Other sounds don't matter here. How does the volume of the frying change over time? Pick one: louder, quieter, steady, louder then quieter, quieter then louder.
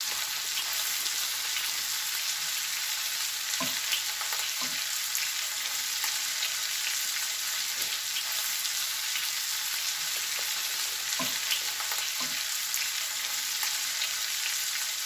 steady.